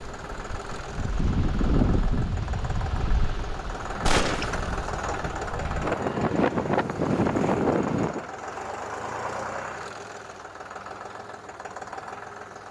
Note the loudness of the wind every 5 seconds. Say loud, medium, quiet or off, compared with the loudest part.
medium, loud, off.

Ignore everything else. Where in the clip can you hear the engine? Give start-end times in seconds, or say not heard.
0.0-12.6.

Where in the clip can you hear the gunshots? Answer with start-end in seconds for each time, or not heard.
4.0-4.5.